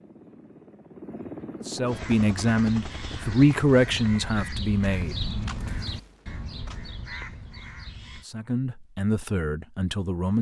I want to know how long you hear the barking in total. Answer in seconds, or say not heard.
not heard.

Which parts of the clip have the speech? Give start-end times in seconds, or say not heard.
1.6-5.2, 8.2-10.3.